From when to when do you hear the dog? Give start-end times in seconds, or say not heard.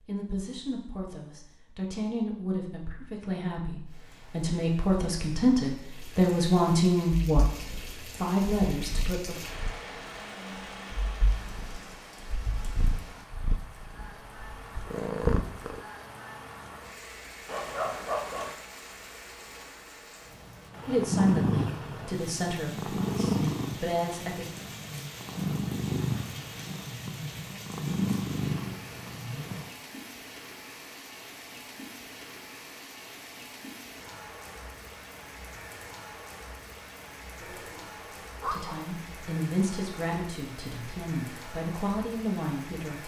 17.4-18.6, 37.4-38.8.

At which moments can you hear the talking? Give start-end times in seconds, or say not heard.
0.1-9.3, 20.9-24.4, 38.5-43.0.